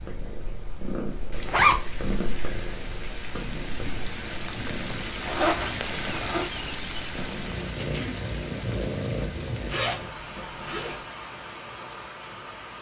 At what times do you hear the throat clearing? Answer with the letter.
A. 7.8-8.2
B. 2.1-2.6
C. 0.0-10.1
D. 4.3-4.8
A.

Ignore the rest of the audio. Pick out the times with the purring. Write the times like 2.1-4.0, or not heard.
0.0-10.1.